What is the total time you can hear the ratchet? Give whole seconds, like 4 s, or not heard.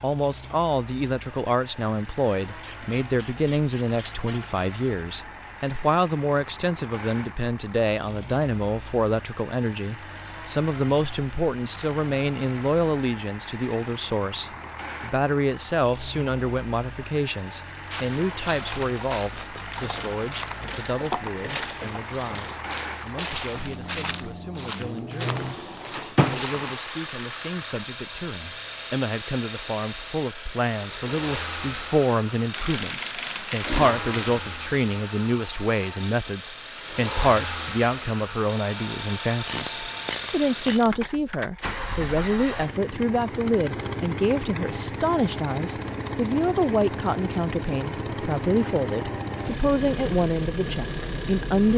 8 s.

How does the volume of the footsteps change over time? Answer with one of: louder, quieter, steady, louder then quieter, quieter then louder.
steady.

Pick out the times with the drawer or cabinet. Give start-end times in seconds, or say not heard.
25.2-26.6.